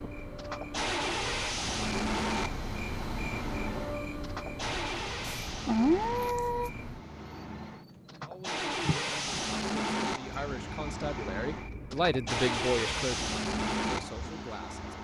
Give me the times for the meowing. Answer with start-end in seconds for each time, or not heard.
5.2-6.7.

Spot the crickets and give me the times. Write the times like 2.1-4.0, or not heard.
0.0-15.0.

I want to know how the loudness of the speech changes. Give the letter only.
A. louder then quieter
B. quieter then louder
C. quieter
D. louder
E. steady
A.